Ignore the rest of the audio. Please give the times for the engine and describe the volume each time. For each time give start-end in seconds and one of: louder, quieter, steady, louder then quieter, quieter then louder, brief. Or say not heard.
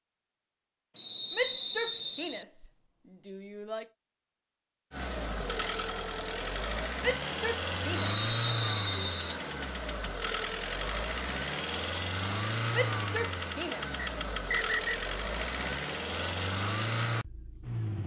4.9-18.0 steady.